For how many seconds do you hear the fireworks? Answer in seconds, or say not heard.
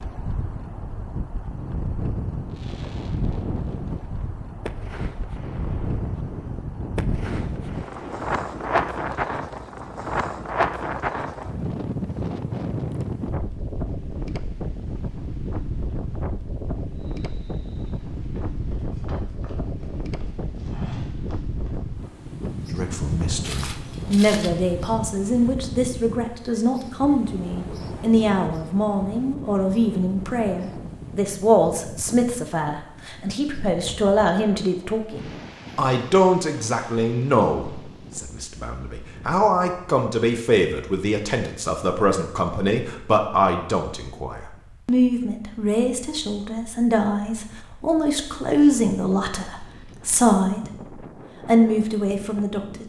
7 s.